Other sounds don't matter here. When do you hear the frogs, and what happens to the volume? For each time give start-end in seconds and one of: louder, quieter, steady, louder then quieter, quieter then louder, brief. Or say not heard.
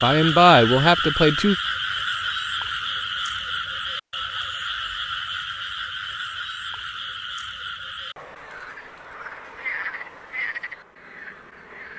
0.0-11.9 quieter.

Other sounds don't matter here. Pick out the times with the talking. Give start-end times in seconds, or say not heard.
0.0-1.6.